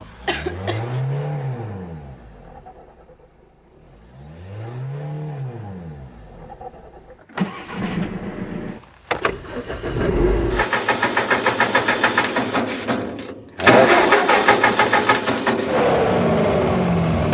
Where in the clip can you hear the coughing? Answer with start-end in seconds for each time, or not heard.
0.2-1.0.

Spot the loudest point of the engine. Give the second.
14 s.